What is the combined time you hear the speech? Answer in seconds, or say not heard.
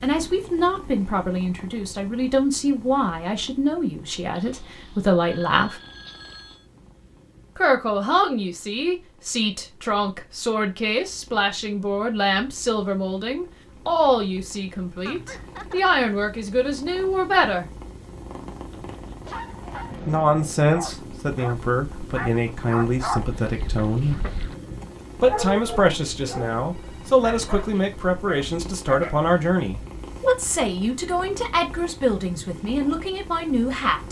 29 s.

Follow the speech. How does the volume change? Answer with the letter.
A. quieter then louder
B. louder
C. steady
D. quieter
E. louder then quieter
C.